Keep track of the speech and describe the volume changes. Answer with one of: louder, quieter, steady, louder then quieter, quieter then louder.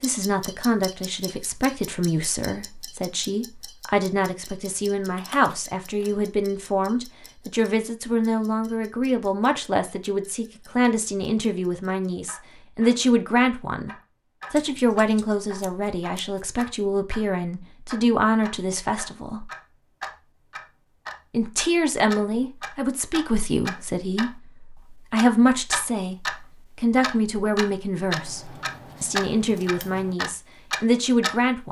steady.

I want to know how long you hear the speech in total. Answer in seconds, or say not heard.
30 s.